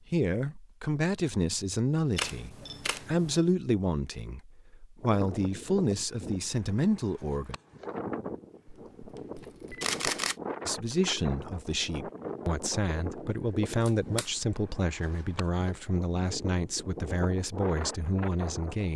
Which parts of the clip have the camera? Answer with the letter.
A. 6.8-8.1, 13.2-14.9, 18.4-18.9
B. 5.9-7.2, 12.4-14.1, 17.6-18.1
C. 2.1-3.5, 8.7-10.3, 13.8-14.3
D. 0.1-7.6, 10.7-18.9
C.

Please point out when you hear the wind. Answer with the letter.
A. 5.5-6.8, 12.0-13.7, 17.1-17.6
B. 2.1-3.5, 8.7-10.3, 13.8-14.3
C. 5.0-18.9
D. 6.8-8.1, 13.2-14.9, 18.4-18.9
C.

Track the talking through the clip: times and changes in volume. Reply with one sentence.
The talking can be heard from 0.1 to 7.6 s, at a steady volume; and from 10.7 to 18.9 s, at a steady volume.